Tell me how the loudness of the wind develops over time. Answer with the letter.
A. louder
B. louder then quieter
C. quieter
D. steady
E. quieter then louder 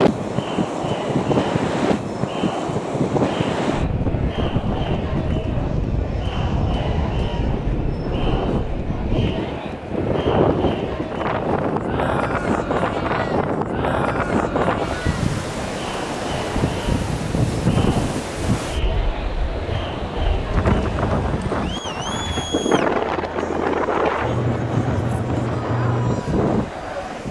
D.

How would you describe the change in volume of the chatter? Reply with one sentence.
The loudness of the chatter stays about the same.